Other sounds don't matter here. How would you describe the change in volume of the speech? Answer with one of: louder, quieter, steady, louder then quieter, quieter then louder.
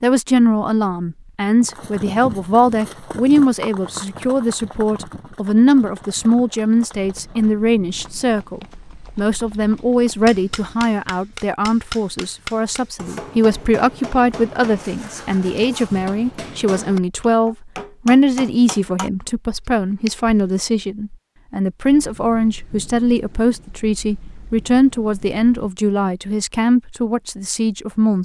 steady.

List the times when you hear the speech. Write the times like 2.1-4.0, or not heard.
0.0-28.1.